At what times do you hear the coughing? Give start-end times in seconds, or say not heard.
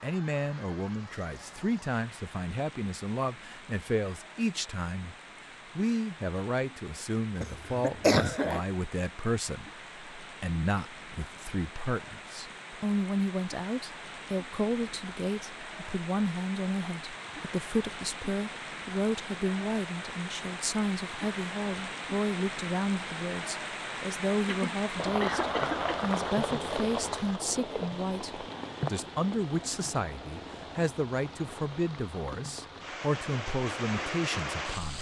7.4-8.6, 24.4-25.9.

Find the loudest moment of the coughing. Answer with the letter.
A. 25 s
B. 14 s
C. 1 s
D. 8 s
D.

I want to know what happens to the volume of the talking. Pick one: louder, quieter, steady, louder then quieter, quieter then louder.
steady.